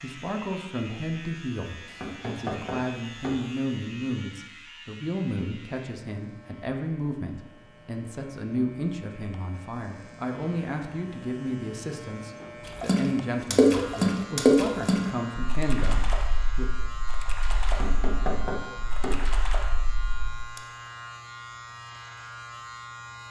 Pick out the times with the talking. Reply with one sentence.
The talking can be heard from 0.0 to 16.7 s.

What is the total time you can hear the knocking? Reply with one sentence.
You can hear the knocking for 3 seconds altogether.